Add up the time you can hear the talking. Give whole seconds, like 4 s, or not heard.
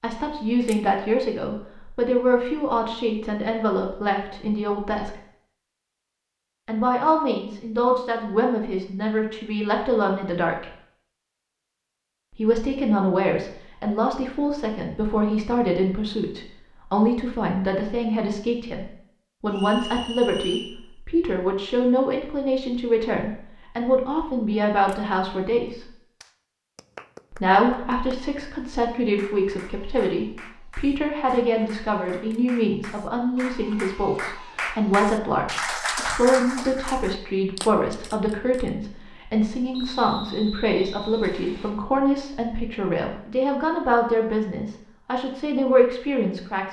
42 s.